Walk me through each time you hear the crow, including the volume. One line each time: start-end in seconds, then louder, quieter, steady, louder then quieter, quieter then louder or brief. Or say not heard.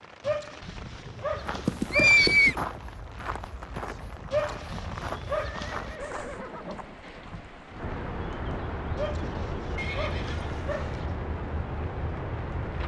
not heard.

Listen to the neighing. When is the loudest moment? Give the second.
2 s.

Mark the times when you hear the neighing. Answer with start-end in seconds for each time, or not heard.
1.6-2.6, 5.3-7.0, 9.8-10.9.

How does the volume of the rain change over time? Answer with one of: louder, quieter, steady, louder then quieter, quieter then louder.
louder.